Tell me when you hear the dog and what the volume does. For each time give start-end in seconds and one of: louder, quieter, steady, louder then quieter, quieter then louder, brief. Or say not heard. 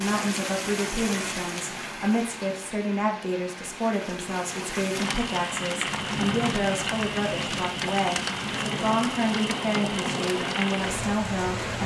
not heard.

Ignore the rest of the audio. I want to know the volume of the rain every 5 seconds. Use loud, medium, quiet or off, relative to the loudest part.
medium, loud, loud.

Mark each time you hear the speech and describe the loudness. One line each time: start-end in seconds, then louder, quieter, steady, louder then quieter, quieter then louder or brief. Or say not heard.
0.0-11.8 steady.